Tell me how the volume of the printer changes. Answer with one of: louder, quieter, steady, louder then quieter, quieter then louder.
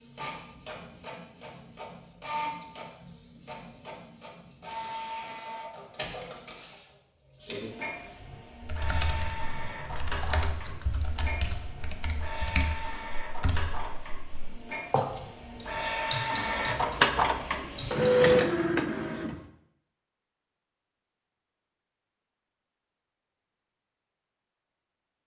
louder.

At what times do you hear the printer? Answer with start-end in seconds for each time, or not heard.
0.0-19.4.